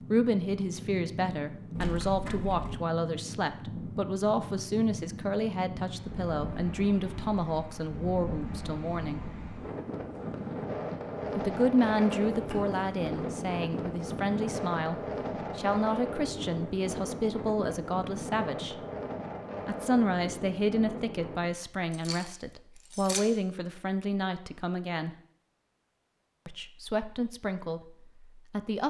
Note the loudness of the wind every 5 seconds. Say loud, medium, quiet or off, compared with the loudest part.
medium, medium, loud, loud, medium, off.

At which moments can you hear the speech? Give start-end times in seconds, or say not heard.
0.1-9.2, 11.3-14.9, 15.6-18.8, 19.6-25.1, 26.4-28.8.